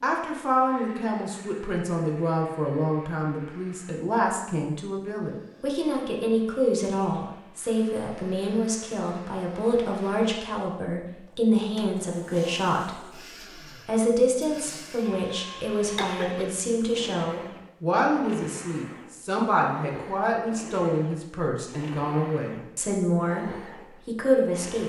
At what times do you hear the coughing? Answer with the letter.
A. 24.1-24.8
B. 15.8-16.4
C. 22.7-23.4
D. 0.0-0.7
B.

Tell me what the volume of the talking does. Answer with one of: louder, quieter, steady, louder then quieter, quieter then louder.
steady.